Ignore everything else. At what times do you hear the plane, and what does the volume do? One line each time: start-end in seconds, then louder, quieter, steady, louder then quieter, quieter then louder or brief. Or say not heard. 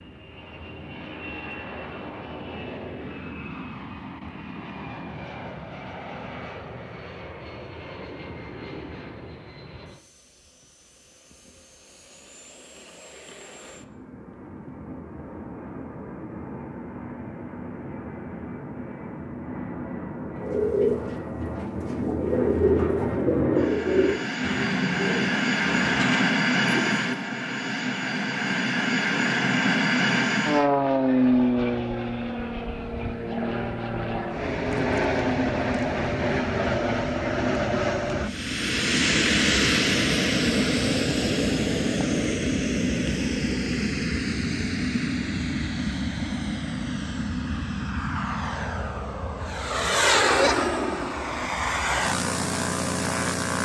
0.0-53.5 louder.